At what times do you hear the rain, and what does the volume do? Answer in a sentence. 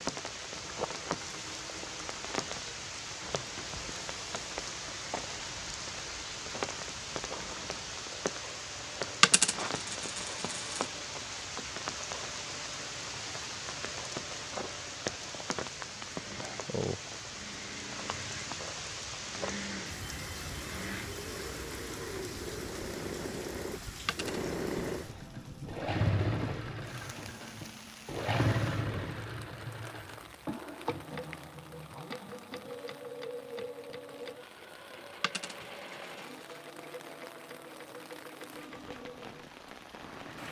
The rain can be heard from 0.0 to 40.4 s, getting quieter.